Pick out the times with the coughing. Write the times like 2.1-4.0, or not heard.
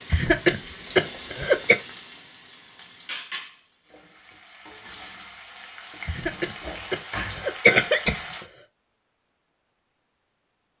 0.1-1.8, 6.0-8.4.